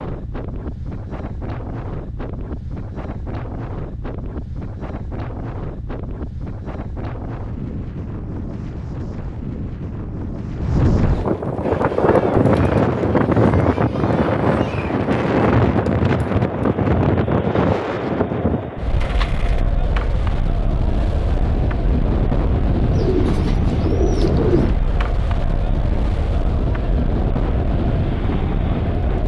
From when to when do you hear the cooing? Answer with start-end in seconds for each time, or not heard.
22.9-24.7.